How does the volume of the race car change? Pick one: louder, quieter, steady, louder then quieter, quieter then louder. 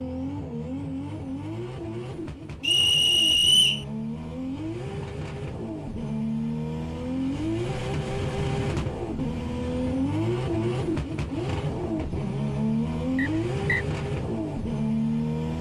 louder.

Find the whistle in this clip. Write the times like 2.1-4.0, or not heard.
2.6-3.9, 13.2-13.8.